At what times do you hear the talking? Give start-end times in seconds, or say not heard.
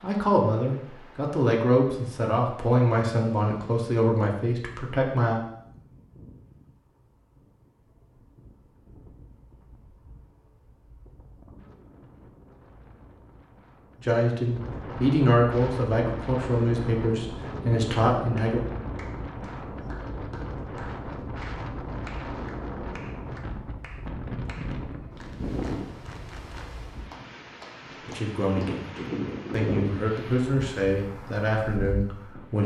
0.0-5.4, 14.0-18.6, 27.9-32.6.